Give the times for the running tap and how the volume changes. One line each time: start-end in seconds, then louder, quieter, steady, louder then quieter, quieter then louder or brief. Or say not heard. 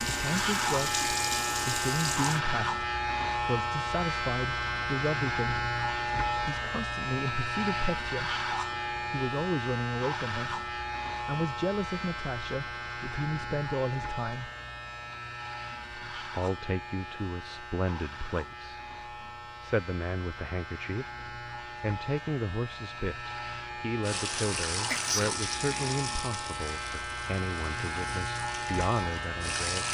0.0-2.4 brief
24.0-29.8 quieter.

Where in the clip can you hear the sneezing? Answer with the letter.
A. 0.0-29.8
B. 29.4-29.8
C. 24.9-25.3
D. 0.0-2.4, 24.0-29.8
C.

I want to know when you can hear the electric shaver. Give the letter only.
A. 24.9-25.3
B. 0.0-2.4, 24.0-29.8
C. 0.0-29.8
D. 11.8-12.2
C.